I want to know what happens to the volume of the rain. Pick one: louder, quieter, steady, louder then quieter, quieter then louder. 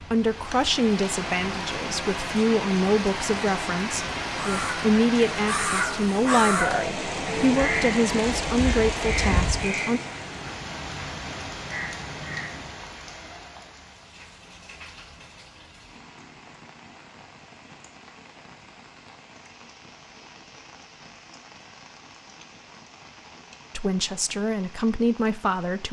quieter.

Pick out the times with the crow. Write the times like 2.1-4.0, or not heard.
4.3-12.8.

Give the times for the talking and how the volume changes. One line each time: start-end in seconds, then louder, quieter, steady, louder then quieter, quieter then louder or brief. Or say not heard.
0.1-10.0 steady
23.8-25.8 brief.